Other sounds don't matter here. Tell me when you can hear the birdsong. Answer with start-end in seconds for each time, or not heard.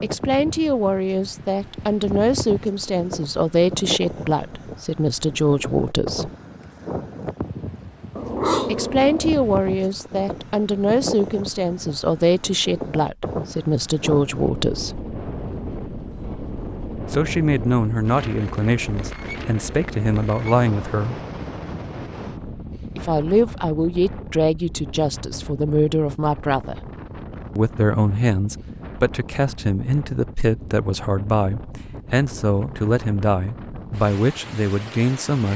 not heard.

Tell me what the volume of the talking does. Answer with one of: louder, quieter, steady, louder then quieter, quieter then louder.
steady.